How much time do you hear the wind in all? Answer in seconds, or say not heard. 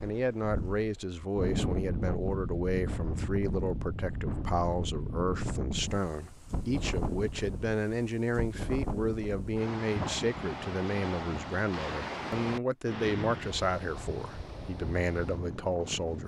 16 s.